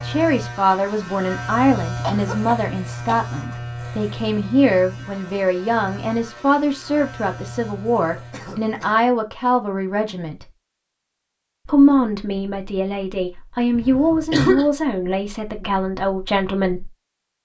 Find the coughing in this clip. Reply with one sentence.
The coughing can be heard from 2.0 to 3.2 s, from 8.2 to 8.9 s and from 13.8 to 14.7 s.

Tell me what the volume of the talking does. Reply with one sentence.
The loudness of the talking stays about the same.